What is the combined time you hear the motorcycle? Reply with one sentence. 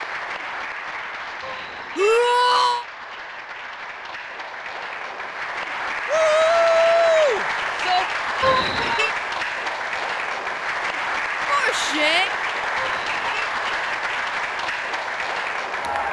The motorcycle can't be heard in this clip.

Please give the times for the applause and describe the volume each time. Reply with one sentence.
The applause can be heard from 0.0 to 16.0 s, getting louder.